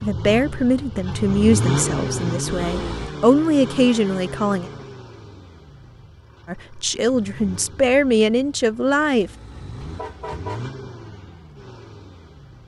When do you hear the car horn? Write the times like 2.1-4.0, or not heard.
2.6-3.1, 9.2-10.7.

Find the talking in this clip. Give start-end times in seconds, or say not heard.
0.0-4.7, 6.5-9.3.